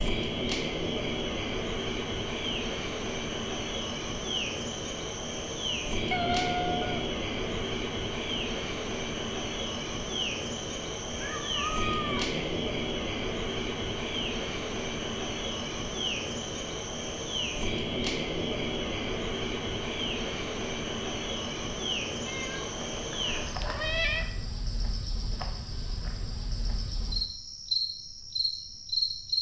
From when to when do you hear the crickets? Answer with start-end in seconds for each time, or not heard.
0.0-29.3.